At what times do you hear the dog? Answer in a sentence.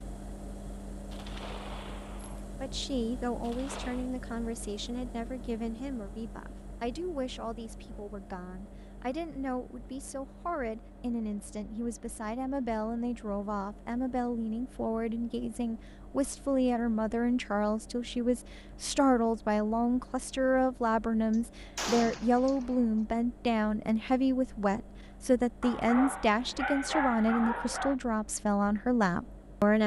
You can hear the dog from 25.6 to 27.9 s.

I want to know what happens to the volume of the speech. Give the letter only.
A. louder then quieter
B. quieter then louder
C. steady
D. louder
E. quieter
D.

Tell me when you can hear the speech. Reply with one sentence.
The speech can be heard from 2.6 to 29.8 s.